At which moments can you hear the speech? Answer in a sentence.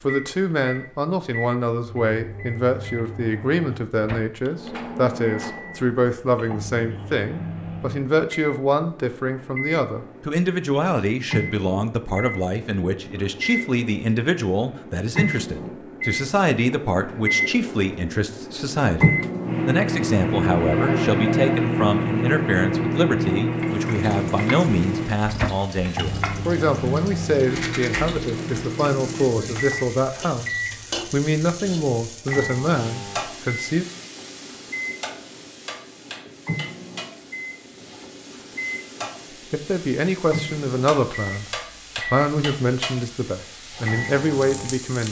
You can hear the speech from 0.0 to 33.9 s and from 39.4 to 45.0 s.